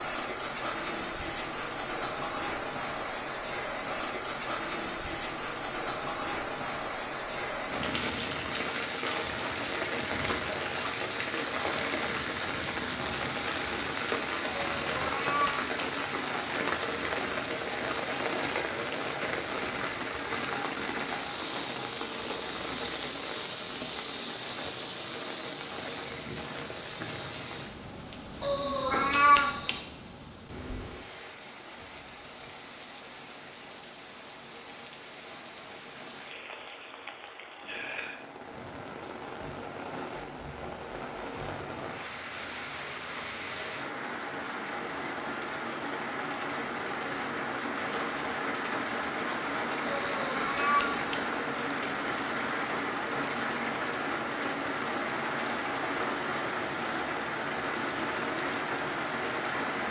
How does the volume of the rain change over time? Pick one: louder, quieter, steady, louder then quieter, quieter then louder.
quieter then louder.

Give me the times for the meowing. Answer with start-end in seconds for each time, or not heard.
14.8-15.7, 28.4-29.8, 49.9-51.2.